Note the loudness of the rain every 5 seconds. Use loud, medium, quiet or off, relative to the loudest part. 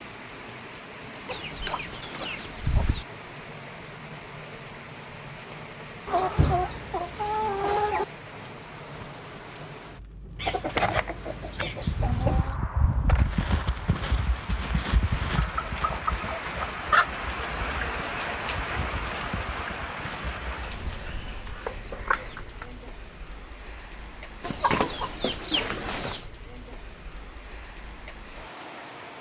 medium, medium, medium, loud, medium, medium.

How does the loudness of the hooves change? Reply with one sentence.
The loudness of the hooves goes down.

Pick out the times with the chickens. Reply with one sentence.
You can hear the chickens from 1.2 to 3.0 s, from 6.0 to 8.1 s, from 10.3 to 12.6 s, from 15.3 to 17.1 s, from 21.3 to 22.6 s and from 24.4 to 26.2 s.